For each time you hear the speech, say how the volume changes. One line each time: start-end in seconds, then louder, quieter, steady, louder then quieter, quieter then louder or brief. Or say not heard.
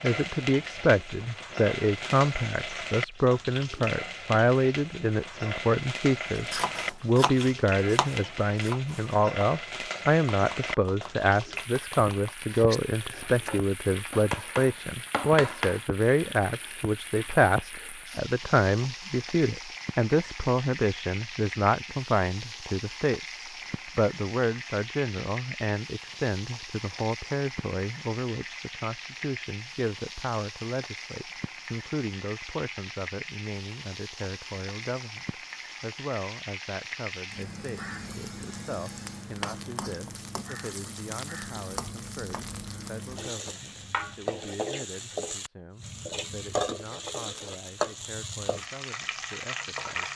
0.0-50.1 quieter.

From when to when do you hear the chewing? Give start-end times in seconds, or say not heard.
not heard.